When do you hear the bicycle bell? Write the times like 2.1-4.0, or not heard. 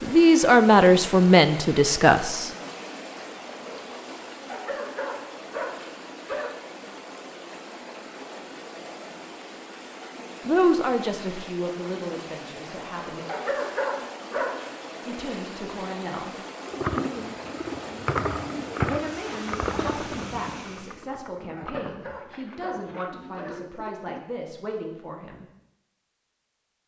not heard.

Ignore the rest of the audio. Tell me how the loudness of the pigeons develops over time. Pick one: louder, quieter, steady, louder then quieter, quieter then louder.
quieter.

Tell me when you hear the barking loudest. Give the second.
14 s.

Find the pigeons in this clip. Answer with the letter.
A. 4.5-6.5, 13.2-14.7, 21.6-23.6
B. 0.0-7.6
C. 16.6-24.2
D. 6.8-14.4
C.